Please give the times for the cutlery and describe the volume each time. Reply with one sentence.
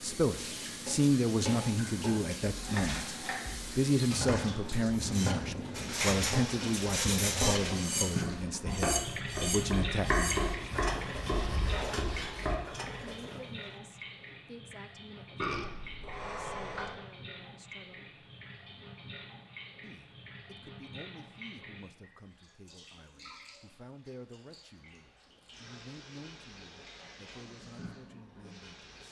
You can hear the cutlery from 5.0 to 13.8 s, getting quieter.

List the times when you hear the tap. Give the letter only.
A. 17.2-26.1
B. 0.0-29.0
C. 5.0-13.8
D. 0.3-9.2
B.